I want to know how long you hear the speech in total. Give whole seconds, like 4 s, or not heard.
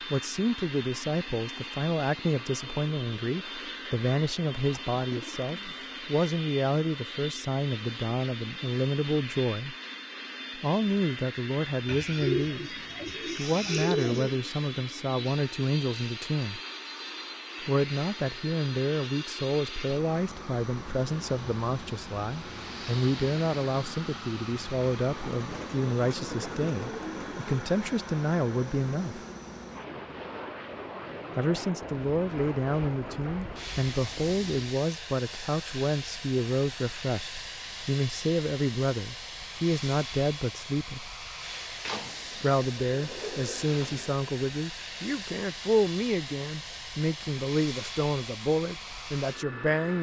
45 s.